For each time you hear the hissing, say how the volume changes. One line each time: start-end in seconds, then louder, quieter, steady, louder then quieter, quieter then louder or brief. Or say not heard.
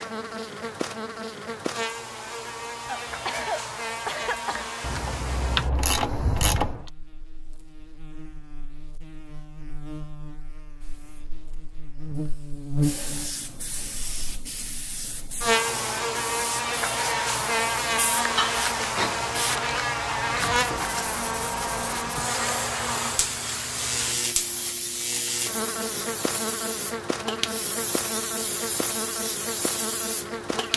10.8-30.7 louder.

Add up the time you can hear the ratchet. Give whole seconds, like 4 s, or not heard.
2 s.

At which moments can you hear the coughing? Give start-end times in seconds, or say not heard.
2.9-4.7, 18.4-19.3.